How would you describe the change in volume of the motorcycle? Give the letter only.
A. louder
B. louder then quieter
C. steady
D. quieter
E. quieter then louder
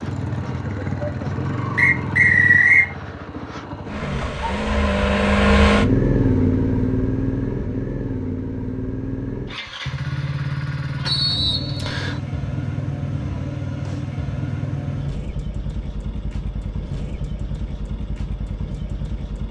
B.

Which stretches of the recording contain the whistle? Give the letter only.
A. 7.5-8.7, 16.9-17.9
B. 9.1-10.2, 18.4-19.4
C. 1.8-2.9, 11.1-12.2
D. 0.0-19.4
C.